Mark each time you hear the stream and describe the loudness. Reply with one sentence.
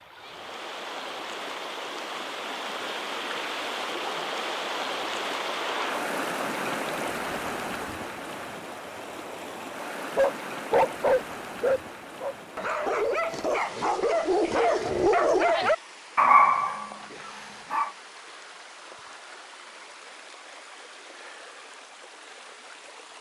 You can hear the stream from 0.0 to 23.1 s, getting quieter.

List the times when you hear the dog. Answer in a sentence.
You can hear the dog from 10.2 to 17.9 s.